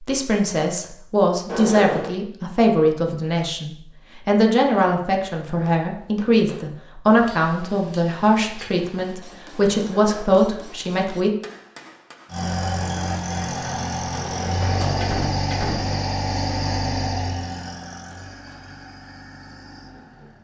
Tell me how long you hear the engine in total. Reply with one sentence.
You can hear the engine for 8 seconds altogether.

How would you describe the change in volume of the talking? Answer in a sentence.
The loudness of the talking stays about the same.